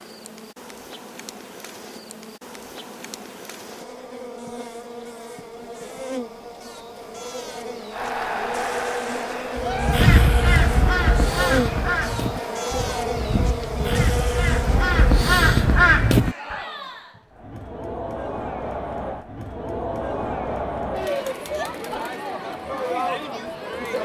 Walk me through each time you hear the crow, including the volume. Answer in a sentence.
You can hear the crow from 9.6 to 16.6 s, getting quieter then louder.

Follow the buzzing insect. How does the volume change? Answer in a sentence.
The loudness of the buzzing insect goes up.